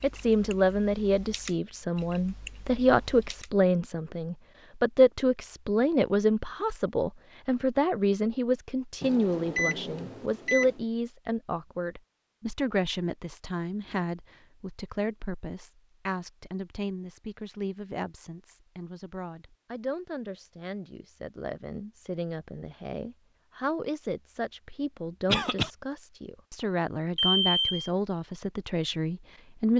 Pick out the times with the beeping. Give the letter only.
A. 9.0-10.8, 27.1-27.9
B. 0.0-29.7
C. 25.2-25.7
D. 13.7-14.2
A.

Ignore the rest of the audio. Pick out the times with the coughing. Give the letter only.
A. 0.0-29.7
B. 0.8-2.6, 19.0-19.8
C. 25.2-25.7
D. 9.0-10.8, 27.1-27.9
C.